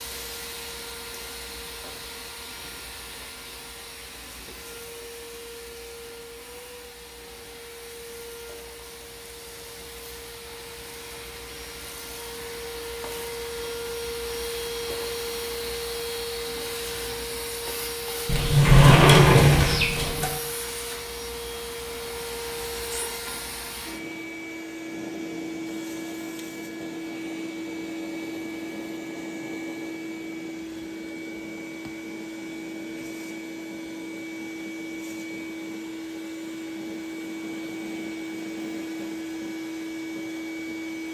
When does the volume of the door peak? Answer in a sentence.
The loudest moment of the door is at 19 seconds.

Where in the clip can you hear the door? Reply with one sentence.
You can hear the door from 18.2 to 20.3 s.